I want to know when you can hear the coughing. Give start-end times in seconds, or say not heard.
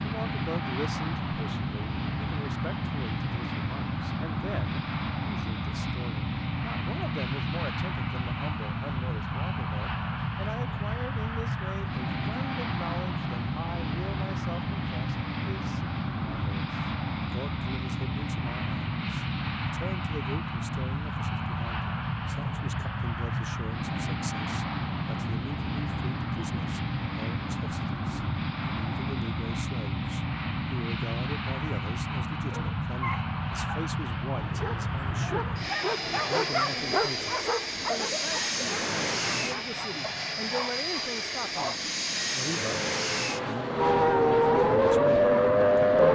not heard.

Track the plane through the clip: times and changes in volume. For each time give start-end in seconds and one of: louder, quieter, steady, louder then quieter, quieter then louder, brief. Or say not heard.
0.0-46.1 steady.